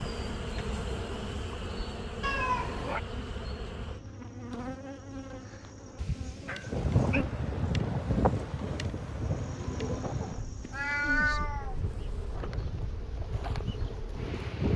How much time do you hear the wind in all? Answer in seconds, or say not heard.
8 s.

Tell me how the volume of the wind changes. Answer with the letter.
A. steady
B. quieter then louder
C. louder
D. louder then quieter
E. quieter
E.